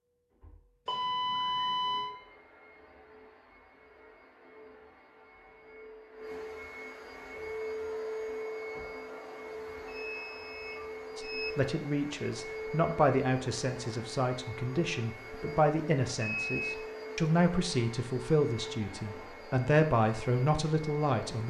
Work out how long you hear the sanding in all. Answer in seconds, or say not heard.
not heard.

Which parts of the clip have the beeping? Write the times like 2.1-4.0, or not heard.
0.8-2.1, 9.8-11.5, 16.4-16.9.